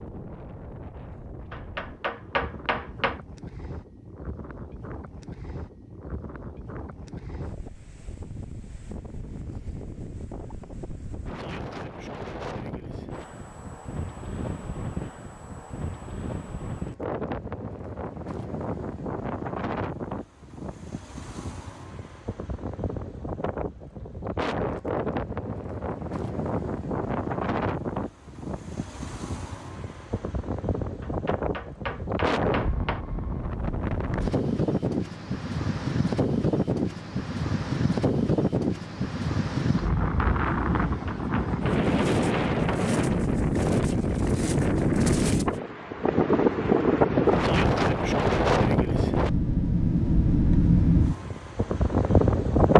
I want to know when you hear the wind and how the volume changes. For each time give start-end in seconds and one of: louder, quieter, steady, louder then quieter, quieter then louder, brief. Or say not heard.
0.0-52.7 louder.